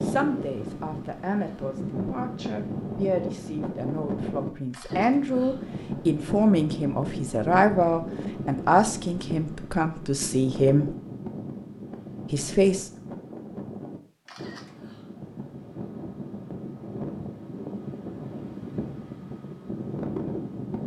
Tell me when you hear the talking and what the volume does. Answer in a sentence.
You can hear the talking from 0.0 to 10.9 s, getting louder; and briefly from 12.3 to 12.9 s.